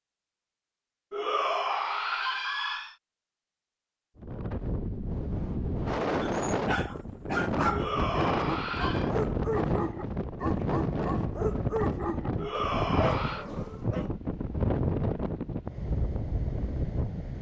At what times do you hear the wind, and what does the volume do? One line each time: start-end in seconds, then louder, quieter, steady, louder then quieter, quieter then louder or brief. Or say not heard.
4.2-17.3 steady.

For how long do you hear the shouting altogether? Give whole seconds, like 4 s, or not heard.
4 s.